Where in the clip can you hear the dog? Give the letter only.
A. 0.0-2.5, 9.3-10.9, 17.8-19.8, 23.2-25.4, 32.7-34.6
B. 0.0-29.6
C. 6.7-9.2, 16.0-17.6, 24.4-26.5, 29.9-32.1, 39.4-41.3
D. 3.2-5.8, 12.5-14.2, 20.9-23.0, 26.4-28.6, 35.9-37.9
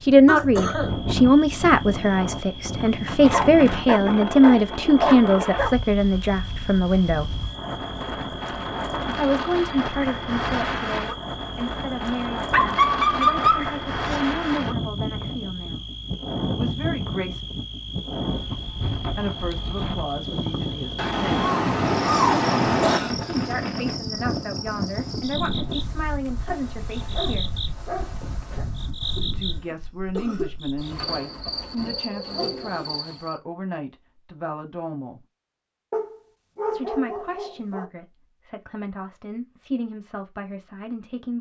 D.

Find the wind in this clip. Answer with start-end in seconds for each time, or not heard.
0.0-29.6.